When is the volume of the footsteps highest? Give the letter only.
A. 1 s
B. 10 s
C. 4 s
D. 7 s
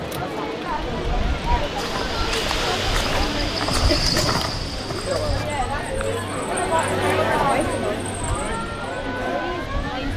C.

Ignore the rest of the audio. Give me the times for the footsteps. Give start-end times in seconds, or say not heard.
1.8-5.5.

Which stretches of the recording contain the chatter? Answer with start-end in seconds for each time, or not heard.
0.0-10.1.